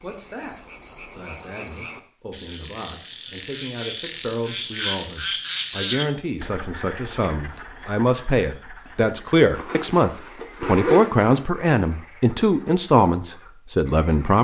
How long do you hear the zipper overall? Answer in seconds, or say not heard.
2 s.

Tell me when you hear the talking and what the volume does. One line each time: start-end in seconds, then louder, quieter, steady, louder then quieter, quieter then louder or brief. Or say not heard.
0.0-0.6 brief
1.1-14.4 louder.